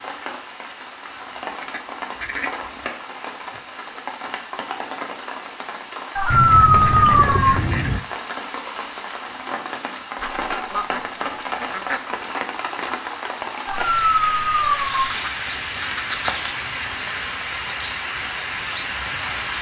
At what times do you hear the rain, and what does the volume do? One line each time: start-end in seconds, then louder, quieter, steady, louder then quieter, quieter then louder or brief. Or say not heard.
0.0-19.5 louder.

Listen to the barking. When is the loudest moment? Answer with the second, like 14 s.
7 s.